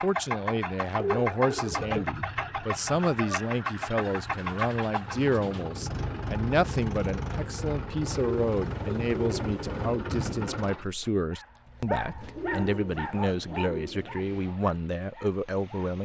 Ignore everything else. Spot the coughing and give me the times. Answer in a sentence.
The coughing can't be heard in this clip.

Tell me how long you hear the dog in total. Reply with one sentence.
The dog can be heard for 5 seconds in total.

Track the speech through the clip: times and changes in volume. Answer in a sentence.
The speech can be heard from 0.0 to 16.0 s, at a steady volume.